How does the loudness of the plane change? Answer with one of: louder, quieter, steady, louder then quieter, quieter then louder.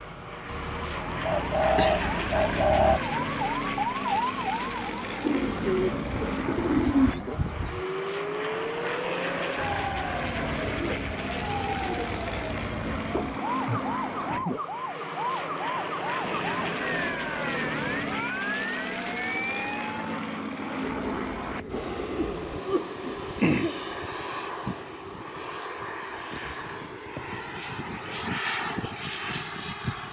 steady.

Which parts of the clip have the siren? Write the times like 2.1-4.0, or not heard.
0.0-20.2.